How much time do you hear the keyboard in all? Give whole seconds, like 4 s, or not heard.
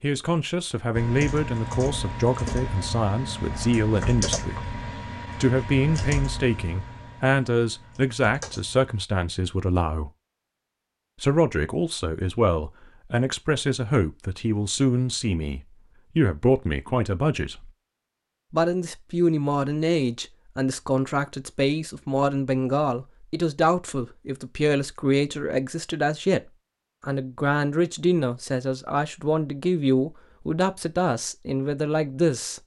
8 s.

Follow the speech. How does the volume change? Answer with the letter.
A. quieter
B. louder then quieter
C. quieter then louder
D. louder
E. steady
E.